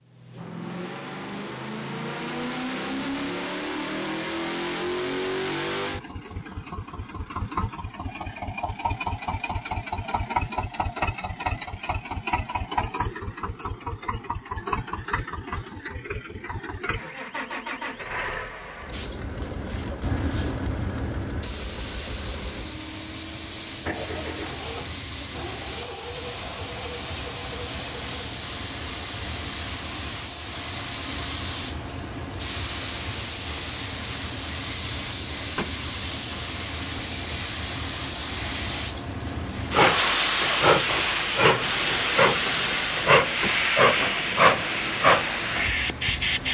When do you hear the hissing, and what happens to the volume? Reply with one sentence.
The hissing can be heard from 18.9 to 46.4 s, getting louder.